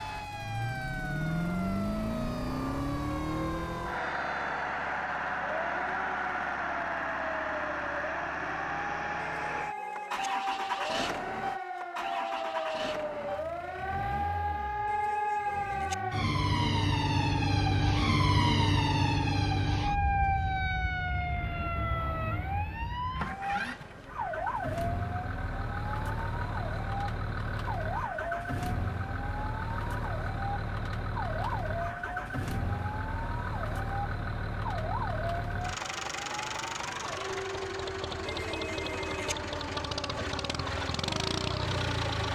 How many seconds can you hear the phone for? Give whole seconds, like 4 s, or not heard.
3 s.